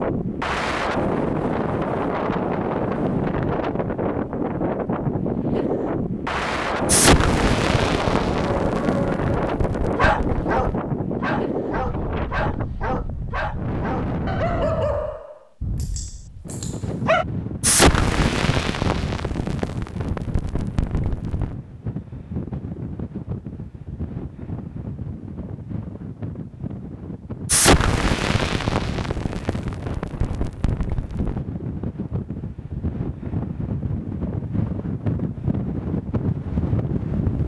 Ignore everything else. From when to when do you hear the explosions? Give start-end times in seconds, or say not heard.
6.8-10.8, 17.6-21.6, 27.4-31.4.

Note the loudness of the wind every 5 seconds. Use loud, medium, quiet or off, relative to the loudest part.
loud, loud, loud, medium, medium, medium, medium, loud.